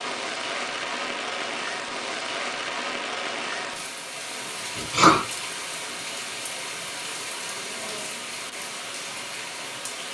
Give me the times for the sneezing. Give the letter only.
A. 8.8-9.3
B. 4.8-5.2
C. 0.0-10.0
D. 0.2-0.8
B.